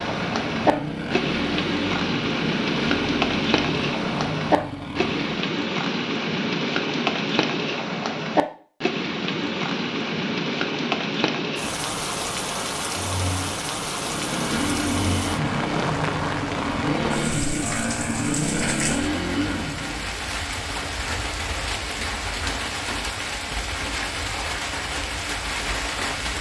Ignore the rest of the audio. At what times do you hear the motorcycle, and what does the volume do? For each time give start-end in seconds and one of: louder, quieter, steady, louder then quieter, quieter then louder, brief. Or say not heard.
0.0-5.5 steady
13.9-20.1 steady.